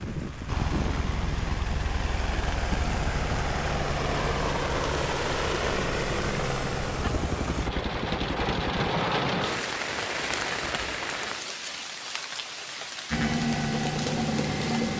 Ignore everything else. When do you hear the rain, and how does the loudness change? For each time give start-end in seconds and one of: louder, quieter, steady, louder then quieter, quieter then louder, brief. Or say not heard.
0.0-14.9 louder then quieter.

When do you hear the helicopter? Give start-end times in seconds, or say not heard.
0.0-9.7, 13.1-14.9.